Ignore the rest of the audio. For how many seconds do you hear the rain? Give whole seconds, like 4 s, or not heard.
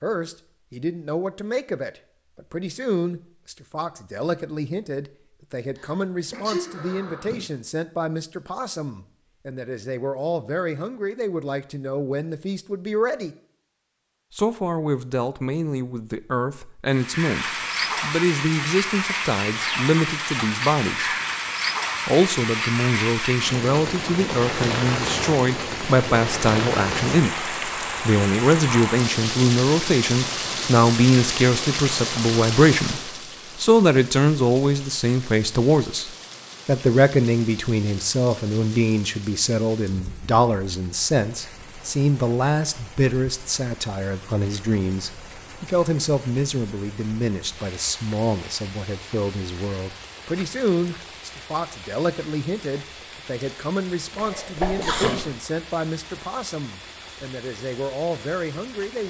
42 s.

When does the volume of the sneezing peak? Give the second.
55 s.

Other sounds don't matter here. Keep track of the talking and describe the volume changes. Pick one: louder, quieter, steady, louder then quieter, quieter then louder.
louder then quieter.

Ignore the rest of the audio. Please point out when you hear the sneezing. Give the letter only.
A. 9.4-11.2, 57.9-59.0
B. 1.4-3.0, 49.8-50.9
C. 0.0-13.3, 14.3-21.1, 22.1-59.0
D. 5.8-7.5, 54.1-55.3
D.